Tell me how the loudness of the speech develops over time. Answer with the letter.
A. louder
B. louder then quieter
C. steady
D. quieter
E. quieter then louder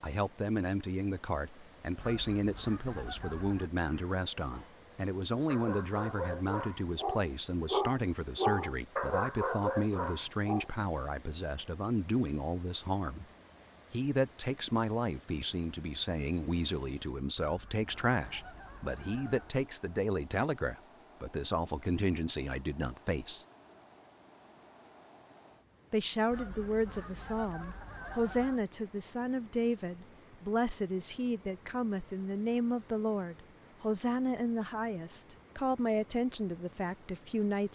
C.